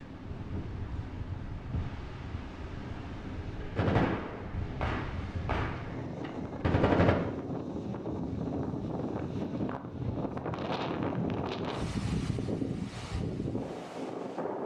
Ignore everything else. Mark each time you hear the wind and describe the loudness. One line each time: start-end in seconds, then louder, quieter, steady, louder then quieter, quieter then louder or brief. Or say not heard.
0.0-14.6 louder.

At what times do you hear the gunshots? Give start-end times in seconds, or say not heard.
3.6-7.2.